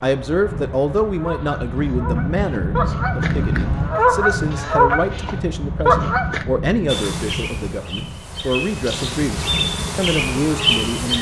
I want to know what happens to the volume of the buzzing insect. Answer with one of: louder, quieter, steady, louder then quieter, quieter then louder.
louder.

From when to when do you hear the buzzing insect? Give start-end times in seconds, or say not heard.
6.8-11.1.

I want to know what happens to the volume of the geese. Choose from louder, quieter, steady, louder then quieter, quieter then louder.
louder.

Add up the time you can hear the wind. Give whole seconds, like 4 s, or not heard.
11 s.